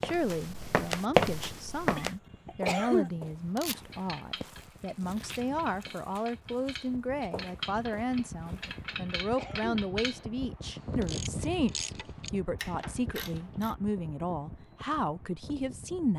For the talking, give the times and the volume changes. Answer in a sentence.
The talking can be heard from 0.0 to 16.1 s, at a steady volume.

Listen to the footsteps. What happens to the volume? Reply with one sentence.
The volume of the footsteps goes down.